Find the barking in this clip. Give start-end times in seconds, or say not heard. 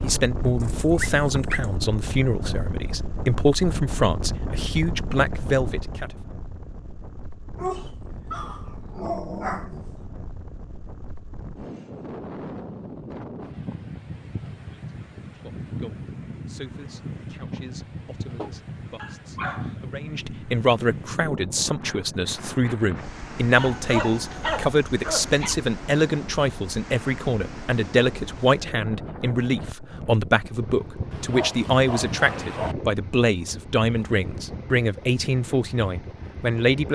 0.6-1.6, 7.5-10.0, 18.4-19.8, 23.6-25.6, 31.1-32.8.